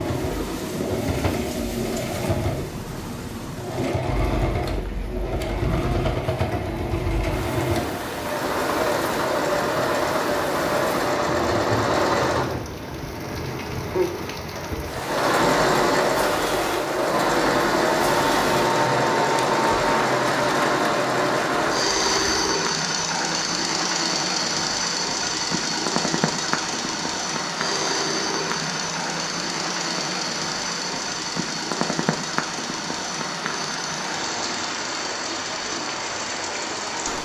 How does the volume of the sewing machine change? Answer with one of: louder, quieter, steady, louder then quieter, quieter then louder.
louder then quieter.